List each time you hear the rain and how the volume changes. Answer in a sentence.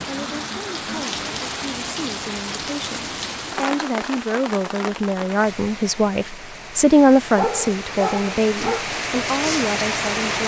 The rain can be heard from 0.0 to 10.4 s, getting quieter then louder.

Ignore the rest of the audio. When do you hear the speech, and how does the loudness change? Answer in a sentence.
The speech can be heard from 0.1 to 10.4 s, getting louder then quieter.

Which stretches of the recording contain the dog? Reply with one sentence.
The dog can be heard from 7.3 to 8.8 s.